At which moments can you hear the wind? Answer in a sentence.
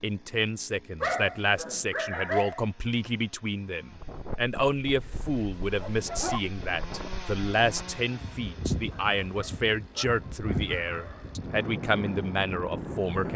The wind can be heard from 4.0 to 13.3 s.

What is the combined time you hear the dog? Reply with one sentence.
The dog can be heard for 6 seconds in total.